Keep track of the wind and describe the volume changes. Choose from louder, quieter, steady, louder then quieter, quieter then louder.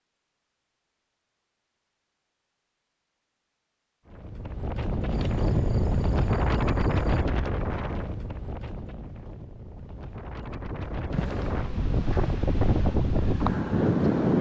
quieter then louder.